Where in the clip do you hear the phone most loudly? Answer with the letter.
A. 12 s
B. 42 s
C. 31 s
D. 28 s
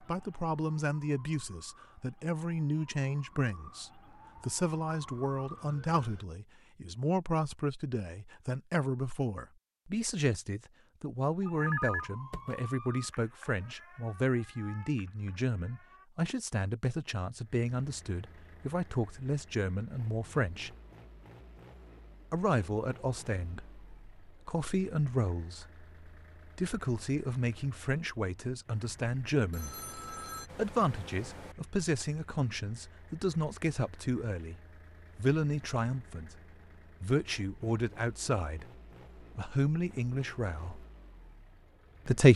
A.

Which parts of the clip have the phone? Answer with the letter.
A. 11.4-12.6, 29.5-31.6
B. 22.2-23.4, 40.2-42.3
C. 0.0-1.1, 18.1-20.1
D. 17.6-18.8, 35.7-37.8
A.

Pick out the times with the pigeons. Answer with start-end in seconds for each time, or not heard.
not heard.